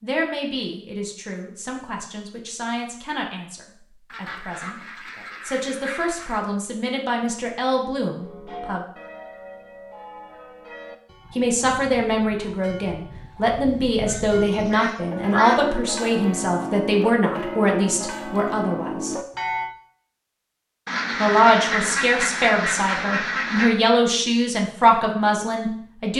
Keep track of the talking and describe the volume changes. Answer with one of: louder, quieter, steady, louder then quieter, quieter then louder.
louder.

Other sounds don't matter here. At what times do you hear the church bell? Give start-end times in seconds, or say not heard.
8.2-19.8.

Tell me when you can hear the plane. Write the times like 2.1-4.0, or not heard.
not heard.